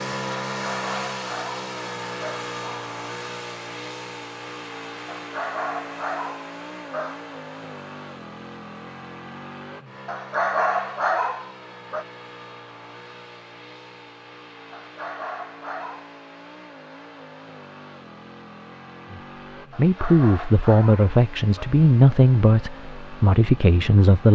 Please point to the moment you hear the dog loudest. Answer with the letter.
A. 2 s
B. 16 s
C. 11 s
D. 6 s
C.